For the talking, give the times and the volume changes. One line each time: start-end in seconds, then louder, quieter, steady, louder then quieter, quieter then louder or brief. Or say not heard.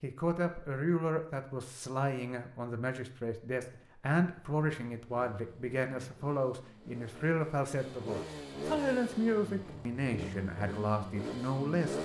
0.0-11.9 steady.